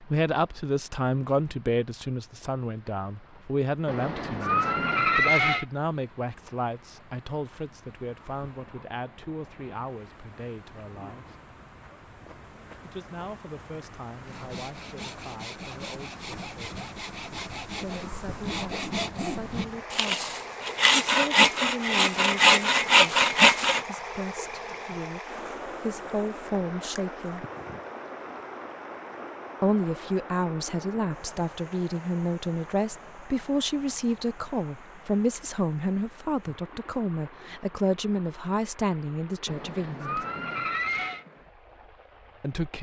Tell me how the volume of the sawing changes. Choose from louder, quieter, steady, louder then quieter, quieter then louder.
louder.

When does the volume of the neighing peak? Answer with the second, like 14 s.
5 s.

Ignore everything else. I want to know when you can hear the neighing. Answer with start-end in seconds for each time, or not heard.
3.9-5.7, 39.5-41.2.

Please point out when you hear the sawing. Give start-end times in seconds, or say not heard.
14.2-23.9.